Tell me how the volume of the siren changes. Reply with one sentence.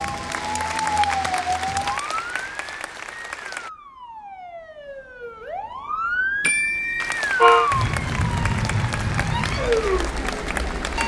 The loudness of the siren goes down, then up.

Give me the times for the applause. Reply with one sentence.
The applause can be heard from 0.0 to 3.7 s and from 7.0 to 11.0 s.